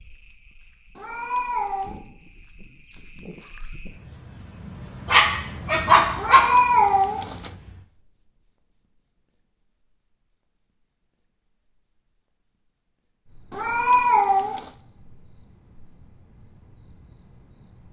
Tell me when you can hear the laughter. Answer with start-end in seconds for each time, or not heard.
not heard.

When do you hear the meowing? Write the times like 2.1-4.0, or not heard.
0.9-2.0, 6.2-7.5, 13.5-14.7.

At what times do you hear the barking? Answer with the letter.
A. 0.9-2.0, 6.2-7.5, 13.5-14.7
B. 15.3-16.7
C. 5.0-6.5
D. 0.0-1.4
C.